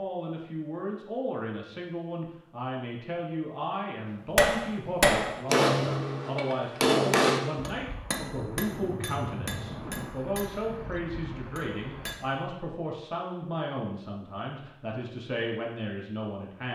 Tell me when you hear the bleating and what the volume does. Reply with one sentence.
You can't hear the bleating here.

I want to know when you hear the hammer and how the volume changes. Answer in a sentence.
The hammer can be heard from 4.3 to 12.4 s, getting quieter.